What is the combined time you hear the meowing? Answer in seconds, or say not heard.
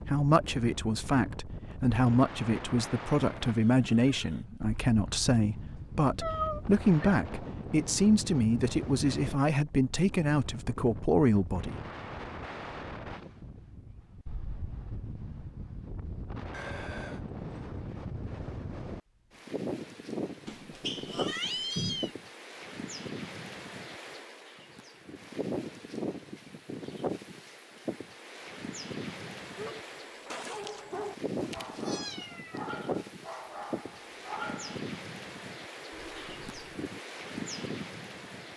5 s.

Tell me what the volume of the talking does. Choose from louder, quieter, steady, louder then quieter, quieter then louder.
steady.